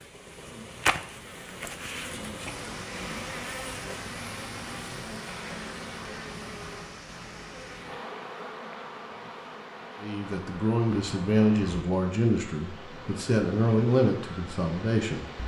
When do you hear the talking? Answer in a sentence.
The talking can be heard from 10.0 to 15.2 s.